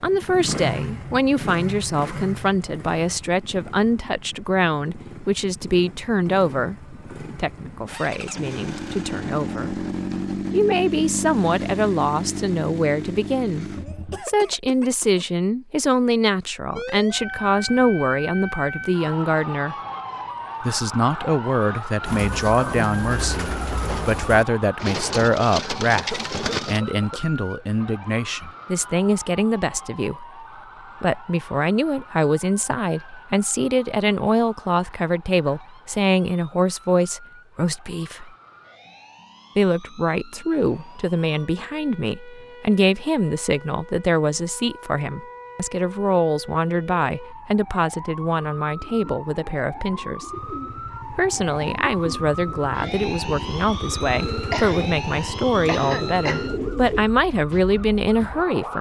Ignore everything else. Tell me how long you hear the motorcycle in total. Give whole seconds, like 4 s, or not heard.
21 s.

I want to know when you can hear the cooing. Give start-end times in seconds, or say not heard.
22.1-26.8, 48.3-57.0.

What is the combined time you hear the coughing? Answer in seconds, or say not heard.
5 s.